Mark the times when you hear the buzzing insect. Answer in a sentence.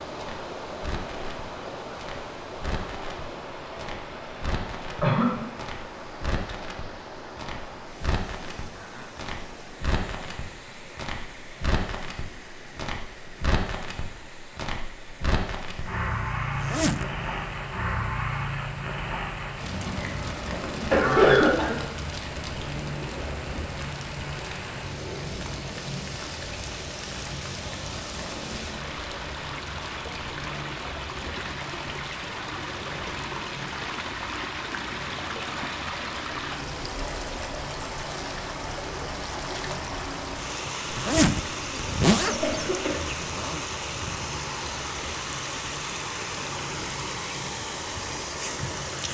The buzzing insect can't be heard in this clip.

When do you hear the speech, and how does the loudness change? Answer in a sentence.
The speech can't be heard in this clip.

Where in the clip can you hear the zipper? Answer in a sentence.
The zipper can be heard from 16.6 to 17.1 s and from 40.9 to 43.6 s.